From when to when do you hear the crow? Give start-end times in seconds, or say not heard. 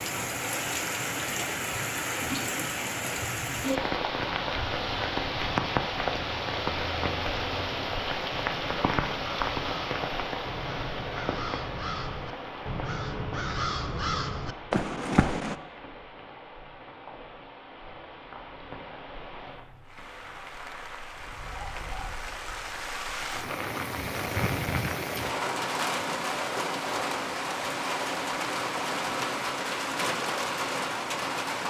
4.2-15.6.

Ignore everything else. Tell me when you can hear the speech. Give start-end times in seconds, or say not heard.
not heard.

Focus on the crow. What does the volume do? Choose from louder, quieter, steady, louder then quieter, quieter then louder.
louder.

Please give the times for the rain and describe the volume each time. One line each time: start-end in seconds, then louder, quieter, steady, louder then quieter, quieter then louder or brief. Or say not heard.
0.0-31.6 quieter then louder.